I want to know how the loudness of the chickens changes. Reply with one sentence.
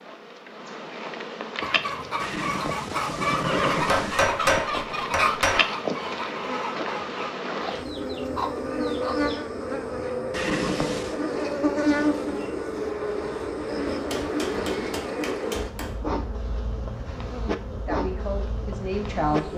The volume of the chickens goes down.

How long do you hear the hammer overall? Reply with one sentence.
You can hear the hammer for 4 seconds altogether.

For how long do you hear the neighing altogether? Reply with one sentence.
You can hear the neighing for 3 seconds altogether.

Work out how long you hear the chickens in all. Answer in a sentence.
The chickens can be heard for 8 seconds in total.